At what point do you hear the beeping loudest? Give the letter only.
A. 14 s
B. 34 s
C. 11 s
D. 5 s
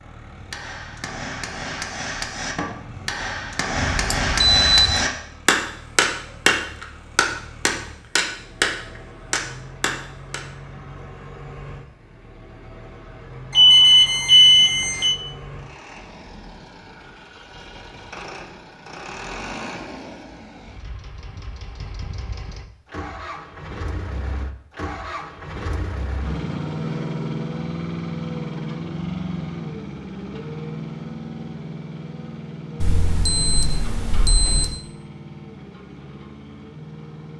A.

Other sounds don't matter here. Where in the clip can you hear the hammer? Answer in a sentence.
The hammer can be heard from 0.0 to 10.4 s.